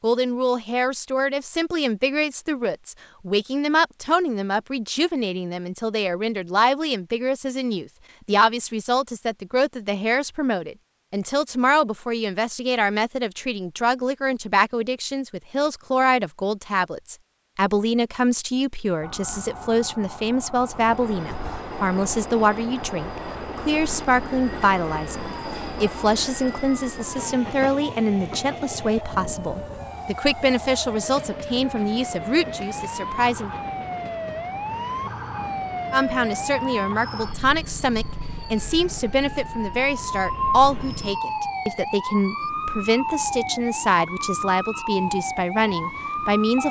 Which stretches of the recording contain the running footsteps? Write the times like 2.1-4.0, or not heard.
not heard.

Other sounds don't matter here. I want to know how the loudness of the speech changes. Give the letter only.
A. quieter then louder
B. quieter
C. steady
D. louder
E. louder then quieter
C.